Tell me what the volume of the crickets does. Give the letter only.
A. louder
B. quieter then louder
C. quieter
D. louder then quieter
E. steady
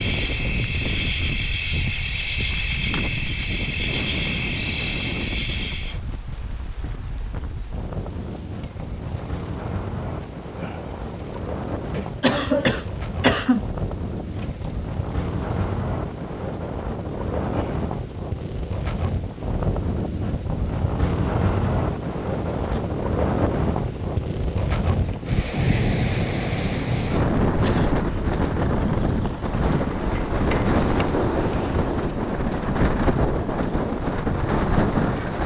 E.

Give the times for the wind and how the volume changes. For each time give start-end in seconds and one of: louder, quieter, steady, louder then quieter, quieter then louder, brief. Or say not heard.
0.0-35.4 louder.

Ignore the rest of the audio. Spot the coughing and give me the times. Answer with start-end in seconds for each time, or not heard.
11.9-13.7, 27.4-27.9.